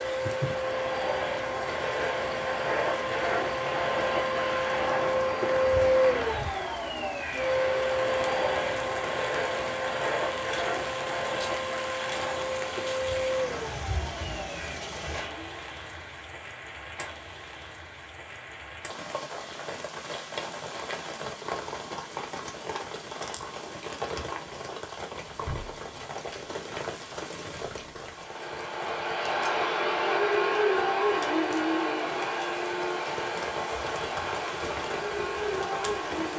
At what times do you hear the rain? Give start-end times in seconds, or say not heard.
0.0-36.3.